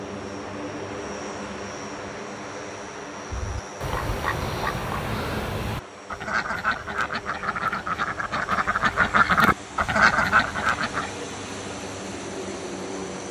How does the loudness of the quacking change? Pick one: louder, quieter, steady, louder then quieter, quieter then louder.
louder.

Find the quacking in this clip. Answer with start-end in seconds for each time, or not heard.
3.3-11.1.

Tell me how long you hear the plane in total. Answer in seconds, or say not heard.
13 s.